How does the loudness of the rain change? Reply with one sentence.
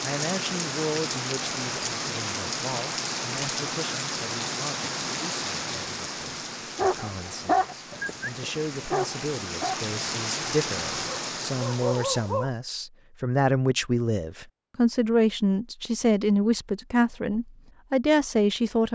The loudness of the rain goes down, then up.